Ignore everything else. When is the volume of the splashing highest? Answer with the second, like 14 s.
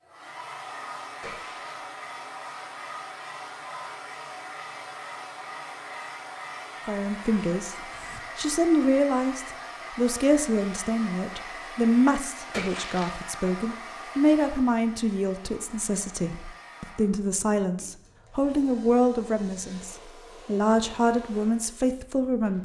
13 s.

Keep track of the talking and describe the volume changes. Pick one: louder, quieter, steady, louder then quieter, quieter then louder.
steady.